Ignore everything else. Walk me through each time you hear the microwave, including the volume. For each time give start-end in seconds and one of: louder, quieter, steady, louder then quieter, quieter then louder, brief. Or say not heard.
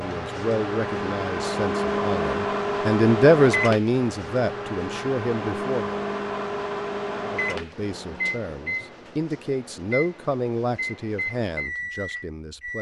0.0-12.7 quieter.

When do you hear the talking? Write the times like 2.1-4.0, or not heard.
0.0-6.0, 7.2-12.7.